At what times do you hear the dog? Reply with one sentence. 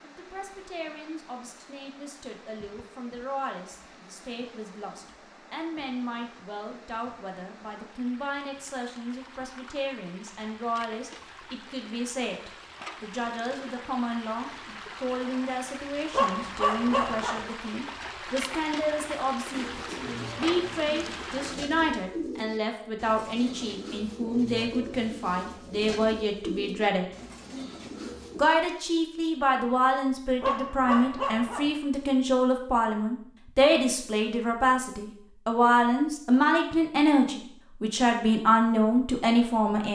The dog can be heard from 16.1 to 17.4 s and from 30.4 to 31.8 s.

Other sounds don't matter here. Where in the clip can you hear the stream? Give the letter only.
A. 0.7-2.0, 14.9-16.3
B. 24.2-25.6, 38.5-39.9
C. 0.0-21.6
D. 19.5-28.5
C.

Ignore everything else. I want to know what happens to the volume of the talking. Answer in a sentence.
The volume of the talking goes up.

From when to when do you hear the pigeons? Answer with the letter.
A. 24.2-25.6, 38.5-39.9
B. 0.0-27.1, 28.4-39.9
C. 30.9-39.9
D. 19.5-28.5
D.